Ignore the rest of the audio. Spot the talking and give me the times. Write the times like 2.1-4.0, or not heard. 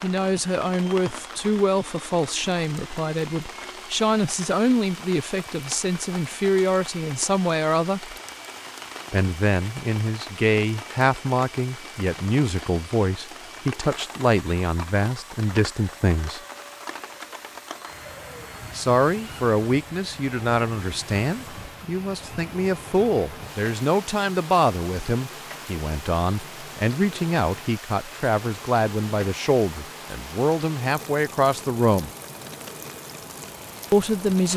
0.0-8.2, 9.1-16.4, 18.8-32.1, 33.9-34.5.